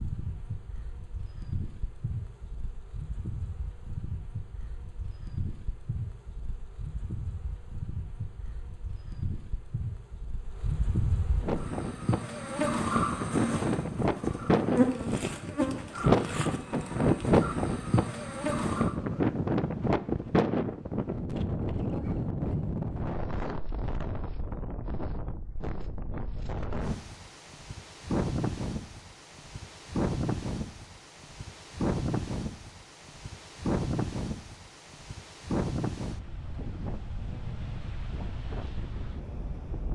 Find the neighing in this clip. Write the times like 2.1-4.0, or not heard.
not heard.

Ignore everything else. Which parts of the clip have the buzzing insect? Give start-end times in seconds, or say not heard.
0.0-18.9.